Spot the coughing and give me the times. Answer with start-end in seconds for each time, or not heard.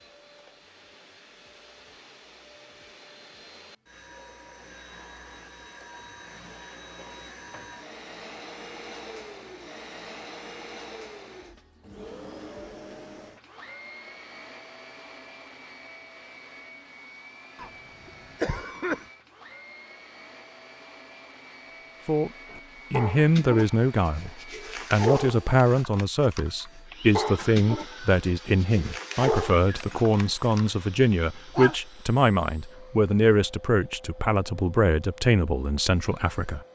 17.6-19.1.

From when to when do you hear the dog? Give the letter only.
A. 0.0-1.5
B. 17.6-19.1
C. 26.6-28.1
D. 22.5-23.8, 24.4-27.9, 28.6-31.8
D.